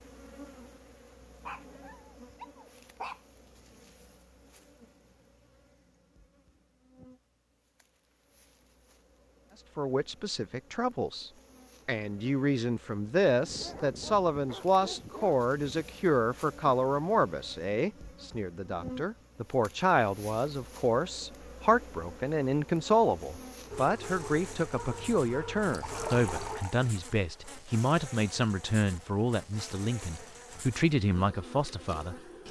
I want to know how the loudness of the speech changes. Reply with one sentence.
The loudness of the speech stays about the same.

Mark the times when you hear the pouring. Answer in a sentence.
The pouring can be heard from 25.7 to 26.8 s.